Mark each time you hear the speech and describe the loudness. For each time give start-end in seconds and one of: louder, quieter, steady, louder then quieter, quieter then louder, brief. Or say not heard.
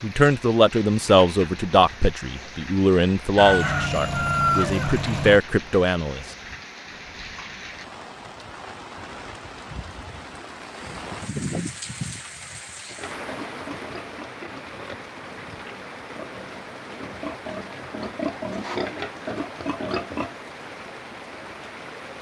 0.0-6.2 quieter then louder.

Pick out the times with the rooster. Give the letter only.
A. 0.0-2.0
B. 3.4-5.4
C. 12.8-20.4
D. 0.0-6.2
B.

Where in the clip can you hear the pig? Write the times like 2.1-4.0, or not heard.
12.8-20.4.